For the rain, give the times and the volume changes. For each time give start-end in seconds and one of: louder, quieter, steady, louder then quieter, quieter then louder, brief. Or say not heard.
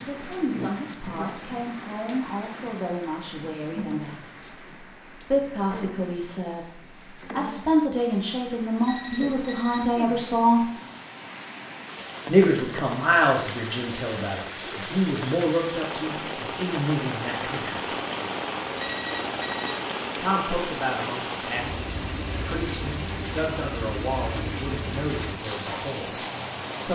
0.0-26.9 louder.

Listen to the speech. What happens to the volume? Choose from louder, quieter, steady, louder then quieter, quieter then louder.
louder then quieter.